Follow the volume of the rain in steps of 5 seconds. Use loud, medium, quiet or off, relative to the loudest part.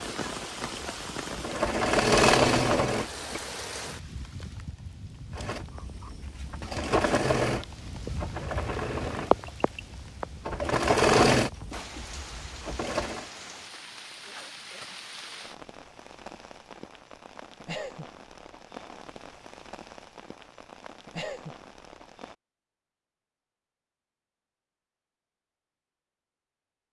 loud, loud, medium, medium, medium, off.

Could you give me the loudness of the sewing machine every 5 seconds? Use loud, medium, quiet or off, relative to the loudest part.
loud, medium, loud, off, off, off.